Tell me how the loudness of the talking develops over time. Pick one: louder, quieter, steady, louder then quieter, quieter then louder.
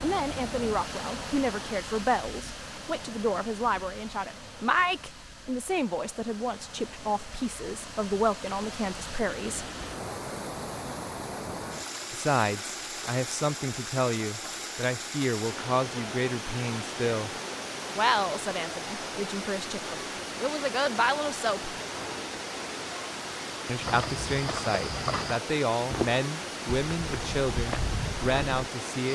steady.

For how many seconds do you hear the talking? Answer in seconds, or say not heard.
24 s.